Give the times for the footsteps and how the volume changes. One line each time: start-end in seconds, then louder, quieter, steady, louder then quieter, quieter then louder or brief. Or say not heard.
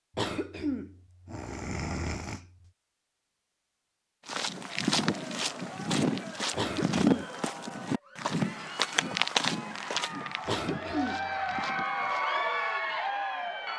4.2-12.2 quieter.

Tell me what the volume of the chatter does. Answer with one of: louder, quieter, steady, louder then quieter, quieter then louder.
louder.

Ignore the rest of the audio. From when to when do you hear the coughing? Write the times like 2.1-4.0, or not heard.
0.1-2.7, 6.5-7.2, 10.4-11.3.